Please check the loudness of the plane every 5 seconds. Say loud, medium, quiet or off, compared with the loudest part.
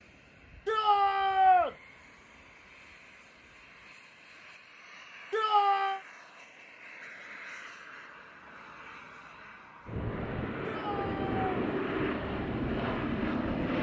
quiet, quiet, loud.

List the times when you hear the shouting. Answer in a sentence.
You can hear the shouting from 0.7 to 1.8 s, from 5.3 to 6.0 s and from 10.7 to 11.4 s.